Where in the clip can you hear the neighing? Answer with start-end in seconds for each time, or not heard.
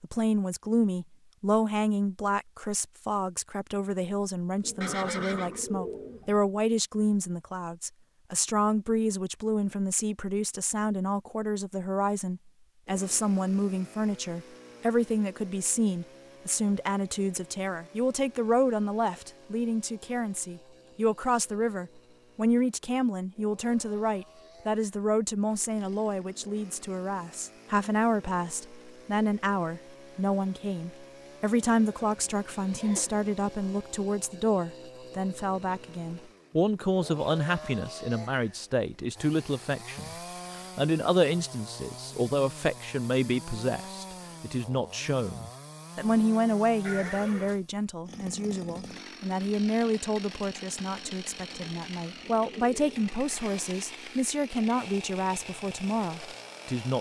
4.8-5.6, 31.9-33.3, 46.8-47.6.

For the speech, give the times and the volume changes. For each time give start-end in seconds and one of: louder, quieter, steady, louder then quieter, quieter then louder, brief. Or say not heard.
0.0-56.9 steady.